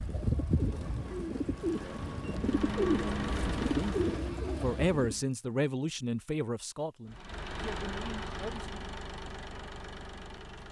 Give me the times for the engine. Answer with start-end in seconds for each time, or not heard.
1.6-4.2, 7.0-10.6.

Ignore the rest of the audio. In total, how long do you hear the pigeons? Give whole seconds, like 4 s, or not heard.
5 s.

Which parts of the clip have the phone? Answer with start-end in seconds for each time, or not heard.
not heard.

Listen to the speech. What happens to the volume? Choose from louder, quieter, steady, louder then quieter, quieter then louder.
quieter.